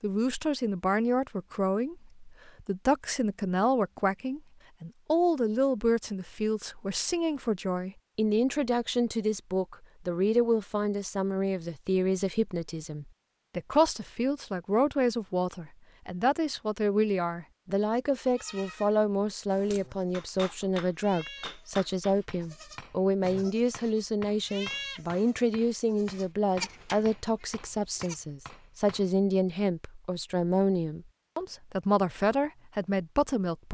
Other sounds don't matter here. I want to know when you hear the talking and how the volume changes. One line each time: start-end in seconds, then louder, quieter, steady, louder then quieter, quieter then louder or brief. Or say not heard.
0.0-33.6 steady.